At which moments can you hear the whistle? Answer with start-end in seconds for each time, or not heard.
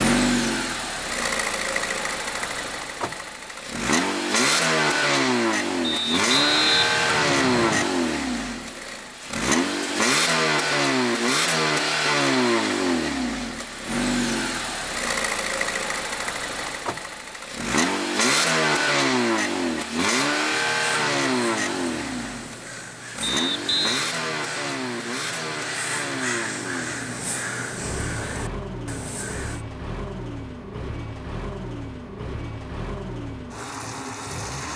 5.8-7.8, 23.2-24.1.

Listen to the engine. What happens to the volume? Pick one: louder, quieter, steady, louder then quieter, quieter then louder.
quieter.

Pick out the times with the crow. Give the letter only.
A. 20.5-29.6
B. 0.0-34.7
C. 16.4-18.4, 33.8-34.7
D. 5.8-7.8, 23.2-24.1
A.